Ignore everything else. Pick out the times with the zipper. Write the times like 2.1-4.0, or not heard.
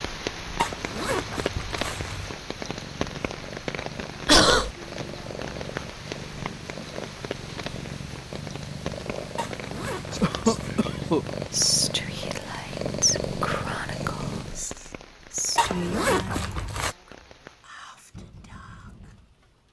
0.6-2.4, 9.3-10.8, 15.6-16.9.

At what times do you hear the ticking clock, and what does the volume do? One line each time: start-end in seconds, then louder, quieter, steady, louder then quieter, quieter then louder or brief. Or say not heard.
not heard.